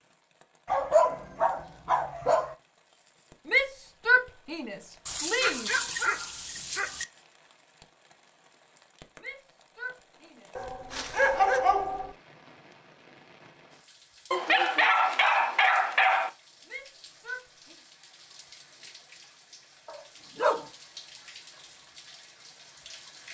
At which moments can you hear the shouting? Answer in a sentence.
The shouting can be heard from 3.5 to 5.7 s, from 9.2 to 10.6 s and from 16.6 to 17.8 s.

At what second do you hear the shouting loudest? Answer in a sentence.
The loudest moment of the shouting is at 4 seconds.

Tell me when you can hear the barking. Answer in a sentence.
The barking can be heard from 0.7 to 2.5 s, from 5.0 to 7.0 s, from 10.6 to 12.2 s, from 14.3 to 16.3 s and from 19.9 to 20.6 s.